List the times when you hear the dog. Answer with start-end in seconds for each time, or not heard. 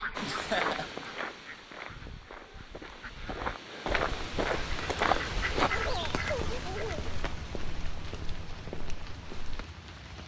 not heard.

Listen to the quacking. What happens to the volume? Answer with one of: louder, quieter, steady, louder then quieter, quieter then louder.
quieter then louder.